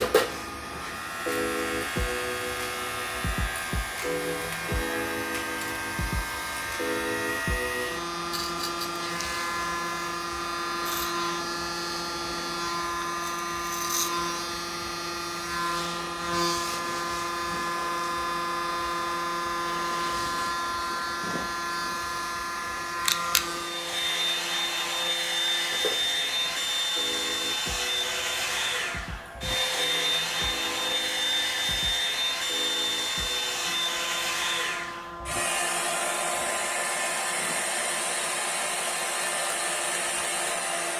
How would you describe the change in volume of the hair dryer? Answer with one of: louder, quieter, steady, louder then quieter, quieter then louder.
louder.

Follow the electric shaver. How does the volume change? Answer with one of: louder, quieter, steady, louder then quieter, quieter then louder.
quieter.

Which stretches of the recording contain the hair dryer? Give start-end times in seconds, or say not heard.
0.0-40.9.